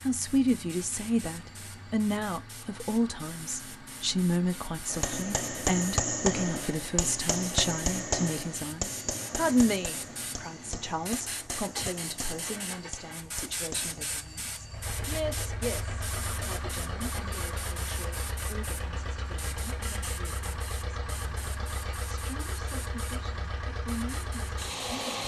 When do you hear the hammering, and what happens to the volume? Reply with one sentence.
The hammering can be heard from 4.8 to 14.1 s, getting quieter.